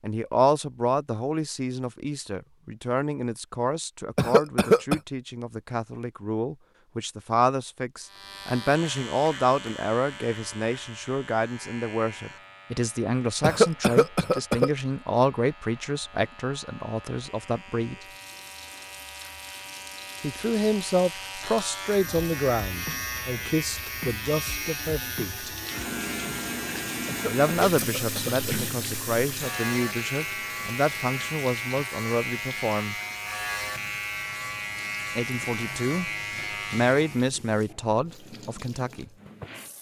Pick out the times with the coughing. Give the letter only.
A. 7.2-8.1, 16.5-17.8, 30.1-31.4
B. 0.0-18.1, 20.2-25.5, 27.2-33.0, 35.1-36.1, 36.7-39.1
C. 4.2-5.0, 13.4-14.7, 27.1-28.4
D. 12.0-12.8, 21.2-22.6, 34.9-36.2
C.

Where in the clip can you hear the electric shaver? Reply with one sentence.
You can hear the electric shaver from 8.0 to 37.3 s.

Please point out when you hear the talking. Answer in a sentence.
You can hear the talking from 0.0 to 18.1 s, from 20.2 to 25.5 s, from 27.2 to 33.0 s, from 35.1 to 36.1 s and from 36.7 to 39.1 s.